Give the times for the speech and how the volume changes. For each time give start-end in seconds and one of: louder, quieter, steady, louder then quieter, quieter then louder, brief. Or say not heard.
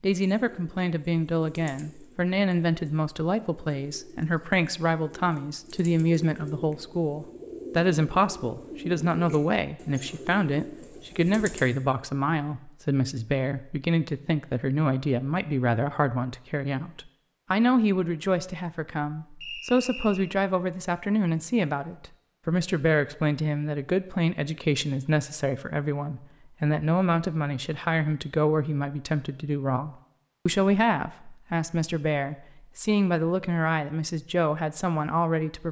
0.0-35.6 steady.